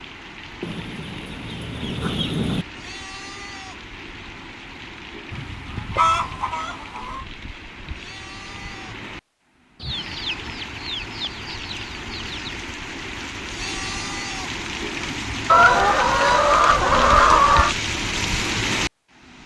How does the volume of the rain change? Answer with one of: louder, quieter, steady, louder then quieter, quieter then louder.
louder.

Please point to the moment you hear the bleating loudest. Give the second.
14 s.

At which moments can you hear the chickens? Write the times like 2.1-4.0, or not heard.
0.6-2.6, 5.3-7.2, 9.8-12.6, 15.4-17.8.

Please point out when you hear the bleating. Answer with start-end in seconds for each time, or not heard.
2.7-3.9, 7.9-9.1, 13.4-14.6.